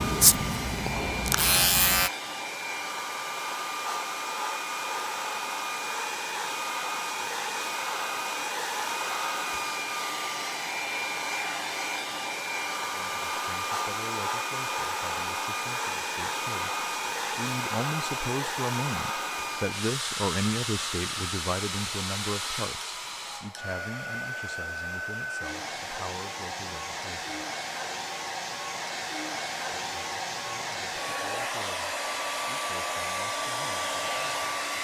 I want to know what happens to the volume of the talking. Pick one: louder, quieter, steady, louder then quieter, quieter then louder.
louder then quieter.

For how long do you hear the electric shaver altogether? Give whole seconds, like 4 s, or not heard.
2 s.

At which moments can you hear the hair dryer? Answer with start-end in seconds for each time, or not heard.
0.0-34.8.